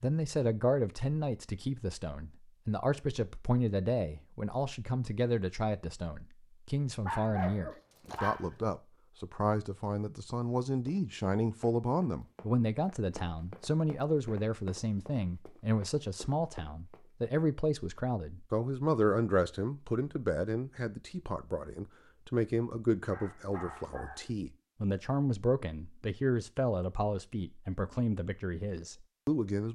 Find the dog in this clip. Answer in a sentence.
You can hear the dog from 7.0 to 8.7 s and from 23.1 to 24.3 s.